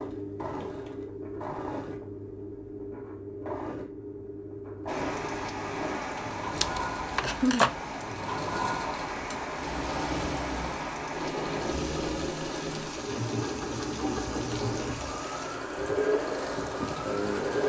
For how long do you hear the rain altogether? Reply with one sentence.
The rain can be heard for 13 seconds in total.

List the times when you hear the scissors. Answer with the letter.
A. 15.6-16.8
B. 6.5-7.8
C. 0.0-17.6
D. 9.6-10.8
B.